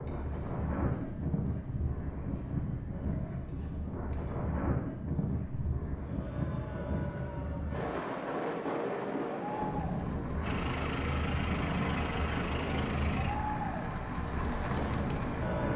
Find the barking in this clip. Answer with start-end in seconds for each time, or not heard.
not heard.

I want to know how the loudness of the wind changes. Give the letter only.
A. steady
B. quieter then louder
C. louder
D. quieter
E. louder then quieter
A.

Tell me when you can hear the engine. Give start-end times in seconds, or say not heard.
10.4-15.7.